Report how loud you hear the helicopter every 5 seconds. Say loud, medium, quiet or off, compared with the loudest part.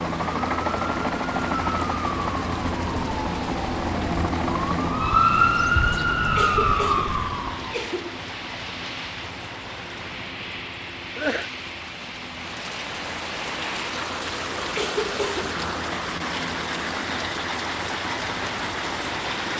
loud, medium, medium, medium.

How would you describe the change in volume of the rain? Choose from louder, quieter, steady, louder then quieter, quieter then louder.
louder.